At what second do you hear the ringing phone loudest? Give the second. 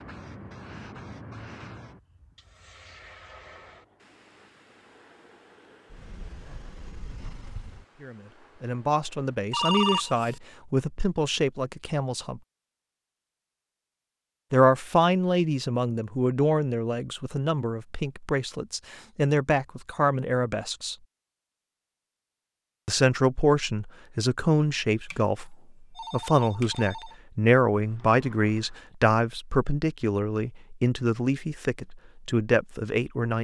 10 s.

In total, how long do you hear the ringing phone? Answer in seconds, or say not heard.
2 s.